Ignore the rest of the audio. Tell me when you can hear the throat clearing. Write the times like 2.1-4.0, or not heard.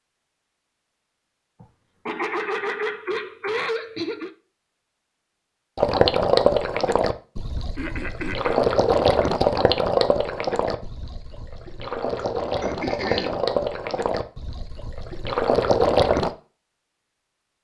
1.6-4.3, 7.8-8.6, 12.6-13.4.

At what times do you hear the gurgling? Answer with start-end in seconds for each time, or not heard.
5.8-16.3.